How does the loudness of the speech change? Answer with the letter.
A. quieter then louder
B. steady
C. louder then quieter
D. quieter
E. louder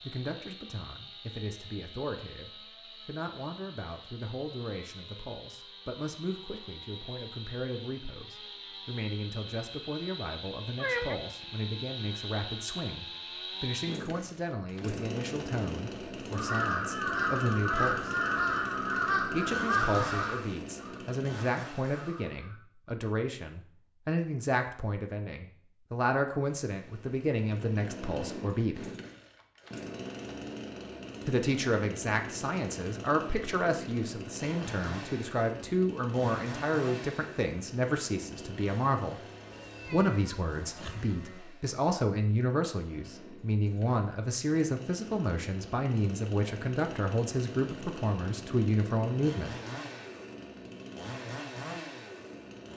E.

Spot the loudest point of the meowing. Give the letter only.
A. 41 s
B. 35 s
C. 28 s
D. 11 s
D.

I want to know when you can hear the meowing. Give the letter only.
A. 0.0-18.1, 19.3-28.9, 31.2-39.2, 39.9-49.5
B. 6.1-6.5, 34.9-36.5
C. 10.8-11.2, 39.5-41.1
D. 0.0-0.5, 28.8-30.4
C.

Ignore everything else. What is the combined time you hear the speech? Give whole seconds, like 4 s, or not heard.
45 s.